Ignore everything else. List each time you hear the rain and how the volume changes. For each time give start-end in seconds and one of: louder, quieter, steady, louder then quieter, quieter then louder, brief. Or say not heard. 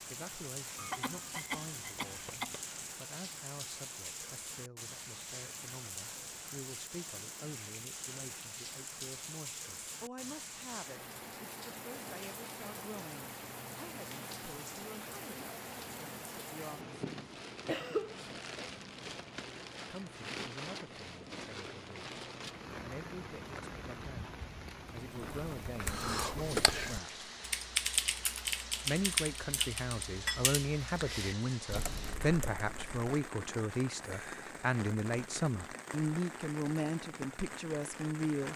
0.0-38.5 steady.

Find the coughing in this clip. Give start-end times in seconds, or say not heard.
0.8-2.6, 17.4-18.7, 25.8-26.6.